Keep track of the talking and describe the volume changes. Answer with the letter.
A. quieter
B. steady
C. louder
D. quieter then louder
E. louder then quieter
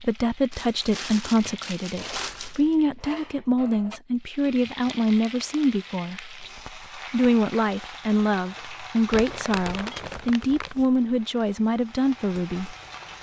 B.